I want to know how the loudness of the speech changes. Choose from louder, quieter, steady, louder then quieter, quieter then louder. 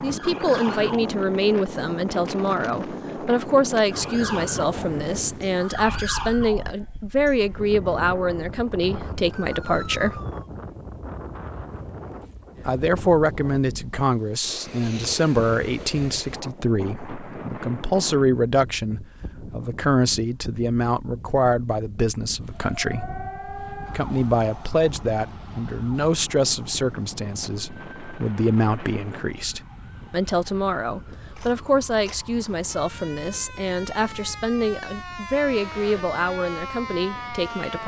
steady.